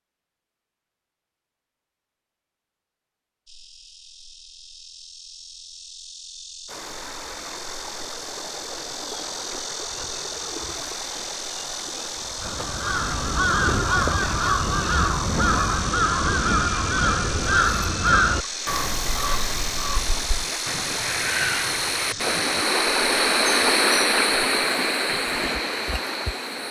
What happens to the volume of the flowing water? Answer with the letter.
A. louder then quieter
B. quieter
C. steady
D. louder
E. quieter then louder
D.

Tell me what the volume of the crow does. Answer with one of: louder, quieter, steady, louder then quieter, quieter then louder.
quieter.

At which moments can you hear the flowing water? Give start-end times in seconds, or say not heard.
6.7-26.6.